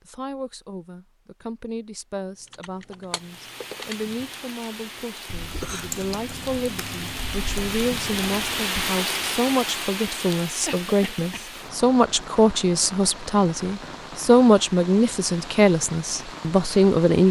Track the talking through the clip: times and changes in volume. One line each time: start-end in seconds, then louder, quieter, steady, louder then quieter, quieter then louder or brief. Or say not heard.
0.1-17.2 louder.